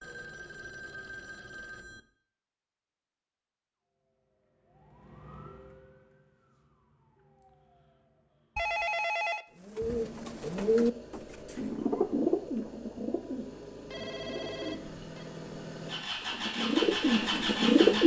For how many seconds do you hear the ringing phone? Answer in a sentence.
The ringing phone can be heard for 5 seconds in total.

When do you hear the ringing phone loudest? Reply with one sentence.
The volume of the ringing phone peaks at 9 seconds.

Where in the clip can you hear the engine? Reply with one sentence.
You can hear the engine from 9.8 to 18.0 s.